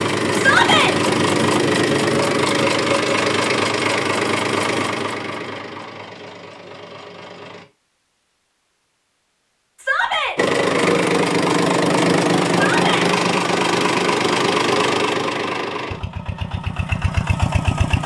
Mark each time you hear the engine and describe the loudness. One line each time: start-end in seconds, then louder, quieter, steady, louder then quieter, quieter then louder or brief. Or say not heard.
0.0-7.7 quieter
10.3-18.0 quieter.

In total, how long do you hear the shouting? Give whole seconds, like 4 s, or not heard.
2 s.